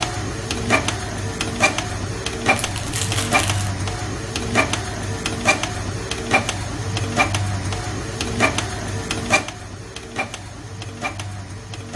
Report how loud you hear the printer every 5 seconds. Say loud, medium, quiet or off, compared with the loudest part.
loud, loud, medium.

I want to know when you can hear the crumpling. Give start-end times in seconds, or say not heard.
2.5-3.7.